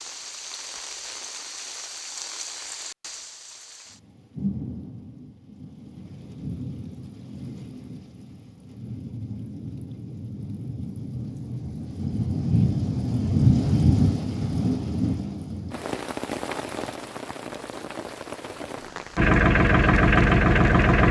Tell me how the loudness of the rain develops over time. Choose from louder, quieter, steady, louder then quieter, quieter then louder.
louder then quieter.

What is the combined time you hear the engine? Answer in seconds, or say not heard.
2 s.